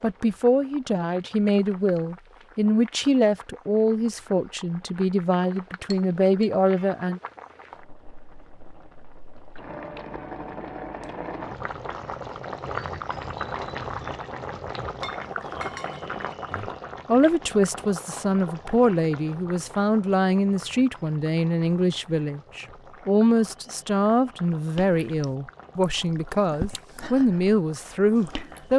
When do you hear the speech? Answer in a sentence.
The speech can be heard from 0.0 to 7.2 s and from 16.5 to 28.7 s.